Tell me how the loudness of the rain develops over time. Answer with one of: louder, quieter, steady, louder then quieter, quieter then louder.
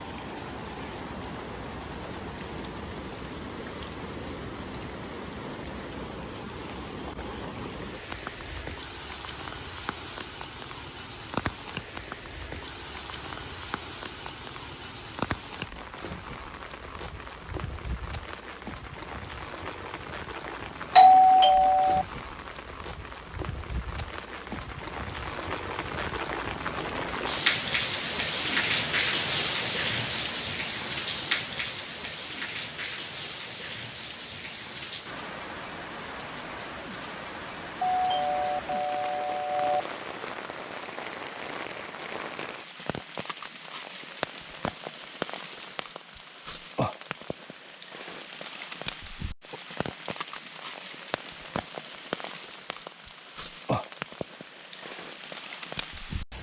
louder then quieter.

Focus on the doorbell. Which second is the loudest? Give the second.
21 s.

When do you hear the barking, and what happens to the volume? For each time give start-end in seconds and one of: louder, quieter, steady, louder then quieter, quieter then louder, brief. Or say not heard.
not heard.